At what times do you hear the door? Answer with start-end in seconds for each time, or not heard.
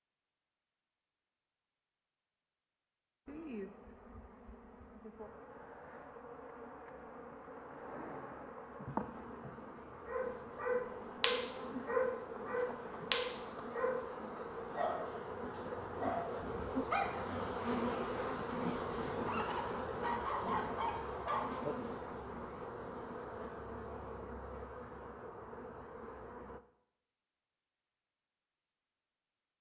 not heard.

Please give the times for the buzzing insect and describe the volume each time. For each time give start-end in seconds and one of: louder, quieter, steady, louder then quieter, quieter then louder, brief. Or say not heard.
3.2-26.6 louder then quieter.